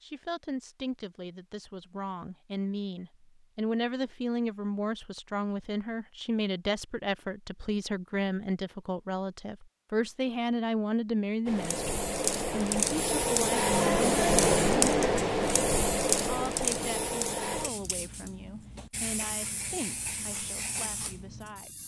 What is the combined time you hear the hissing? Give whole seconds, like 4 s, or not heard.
10 s.